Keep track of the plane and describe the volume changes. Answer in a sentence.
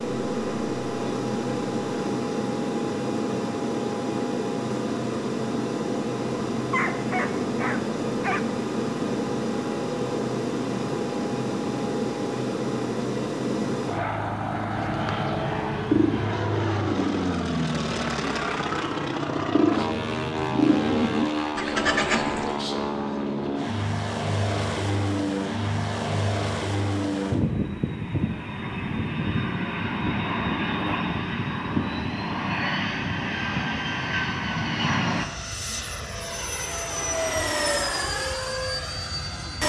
The loudness of the plane stays about the same.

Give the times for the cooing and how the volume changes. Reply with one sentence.
The cooing can be heard from 14.7 to 22.6 s, getting quieter then louder.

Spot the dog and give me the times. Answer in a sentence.
The dog can be heard from 6.5 to 8.4 s.